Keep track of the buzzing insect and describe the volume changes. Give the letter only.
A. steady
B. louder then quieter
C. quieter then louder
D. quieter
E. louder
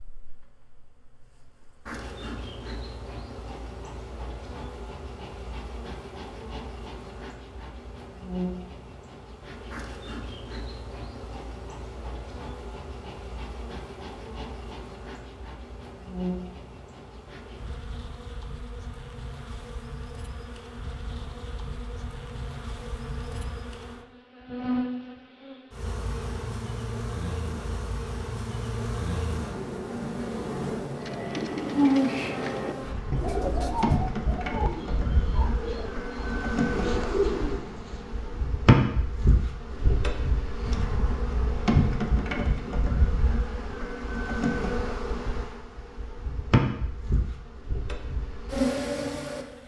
E.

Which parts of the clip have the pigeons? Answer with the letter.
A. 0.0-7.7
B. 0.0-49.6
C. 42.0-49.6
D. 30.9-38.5
D.